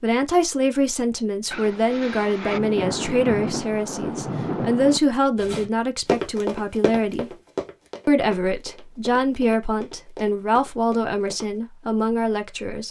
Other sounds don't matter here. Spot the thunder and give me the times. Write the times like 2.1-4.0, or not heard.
1.5-5.0.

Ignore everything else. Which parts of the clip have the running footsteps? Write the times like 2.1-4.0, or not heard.
5.3-11.6.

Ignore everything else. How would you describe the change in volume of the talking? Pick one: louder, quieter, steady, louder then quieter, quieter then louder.
steady.